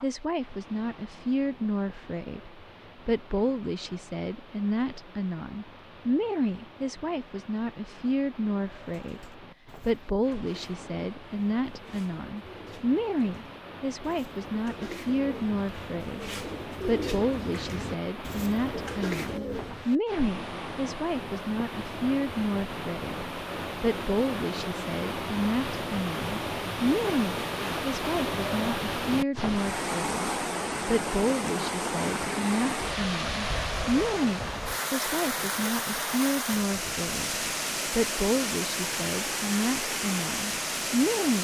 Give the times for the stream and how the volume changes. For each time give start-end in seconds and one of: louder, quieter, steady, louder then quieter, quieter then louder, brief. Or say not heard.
0.0-41.3 louder.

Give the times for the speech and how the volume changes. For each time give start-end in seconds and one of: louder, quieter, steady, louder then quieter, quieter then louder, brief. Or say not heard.
0.0-41.3 steady.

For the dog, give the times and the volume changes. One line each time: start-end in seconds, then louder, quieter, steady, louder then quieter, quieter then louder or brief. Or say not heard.
not heard.